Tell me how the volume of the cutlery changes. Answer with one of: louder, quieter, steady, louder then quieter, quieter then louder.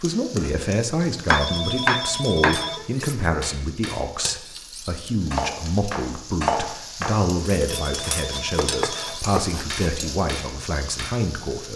louder then quieter.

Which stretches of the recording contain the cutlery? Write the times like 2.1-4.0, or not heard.
2.4-11.2.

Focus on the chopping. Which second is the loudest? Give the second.
2 s.